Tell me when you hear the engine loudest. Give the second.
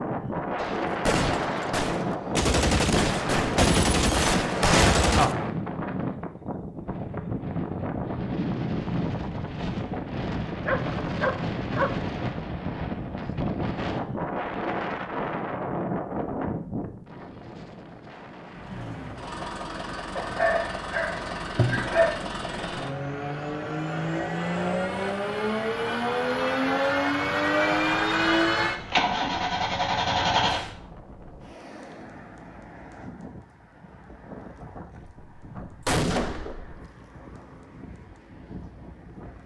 28 s.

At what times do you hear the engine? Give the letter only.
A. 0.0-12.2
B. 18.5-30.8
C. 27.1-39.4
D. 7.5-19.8
B.